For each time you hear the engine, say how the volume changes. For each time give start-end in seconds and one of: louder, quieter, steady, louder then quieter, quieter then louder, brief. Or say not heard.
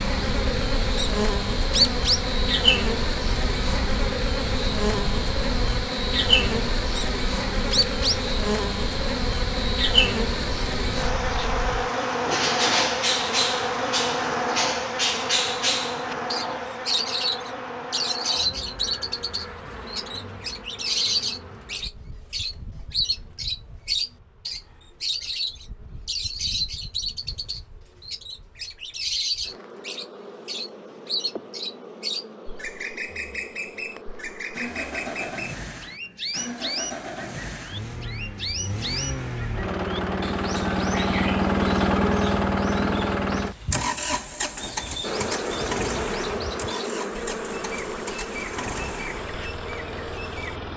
34.5-50.7 louder then quieter.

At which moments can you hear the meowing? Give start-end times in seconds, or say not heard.
not heard.